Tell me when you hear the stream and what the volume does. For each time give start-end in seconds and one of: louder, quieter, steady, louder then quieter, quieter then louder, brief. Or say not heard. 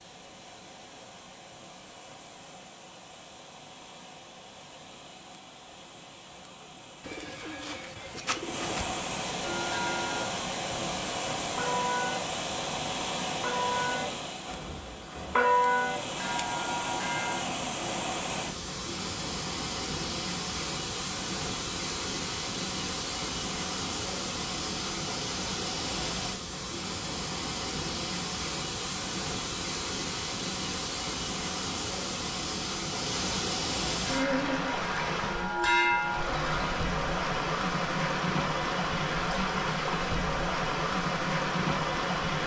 0.0-42.4 louder.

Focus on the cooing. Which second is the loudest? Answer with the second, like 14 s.
8 s.